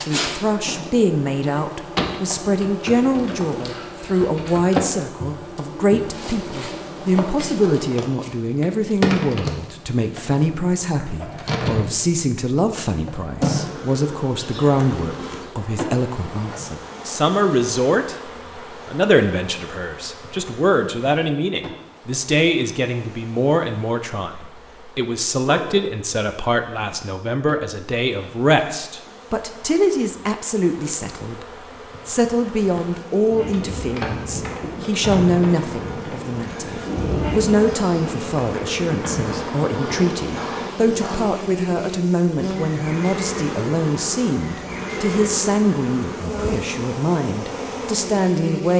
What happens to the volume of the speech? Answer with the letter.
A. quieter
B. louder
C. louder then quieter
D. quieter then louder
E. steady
E.